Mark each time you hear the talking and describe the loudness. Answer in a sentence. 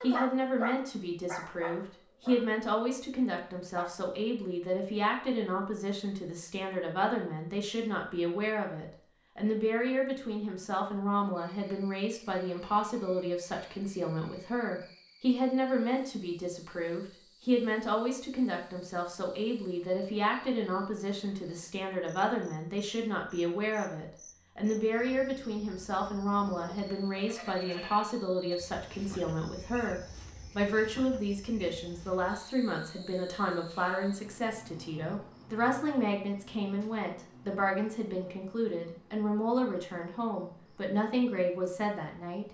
You can hear the talking from 0.0 to 42.4 s, at a steady volume.